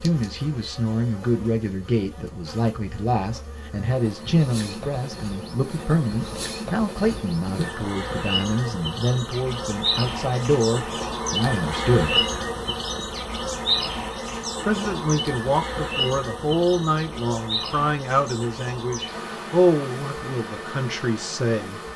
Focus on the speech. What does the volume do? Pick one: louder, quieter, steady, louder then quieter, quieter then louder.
steady.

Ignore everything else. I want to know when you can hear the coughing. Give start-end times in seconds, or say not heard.
not heard.